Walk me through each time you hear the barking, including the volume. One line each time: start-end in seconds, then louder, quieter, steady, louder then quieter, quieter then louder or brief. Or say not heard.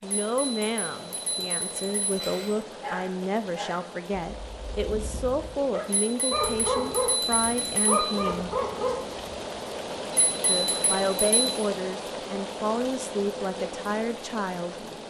2.1-9.6 quieter then louder.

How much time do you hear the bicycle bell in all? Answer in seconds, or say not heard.
6 s.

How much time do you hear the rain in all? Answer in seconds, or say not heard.
15 s.